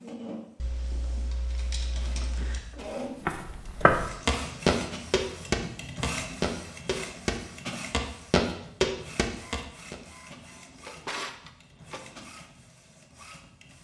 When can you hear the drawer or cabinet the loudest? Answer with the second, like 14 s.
11 s.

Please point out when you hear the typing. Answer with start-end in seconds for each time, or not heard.
0.6-2.6.